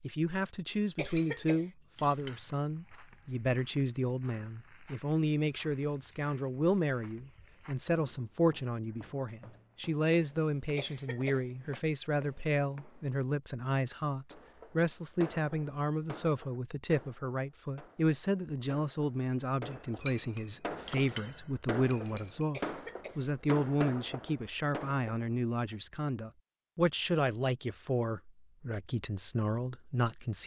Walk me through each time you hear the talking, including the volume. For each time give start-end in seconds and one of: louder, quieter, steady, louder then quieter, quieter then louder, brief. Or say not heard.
0.0-30.4 steady.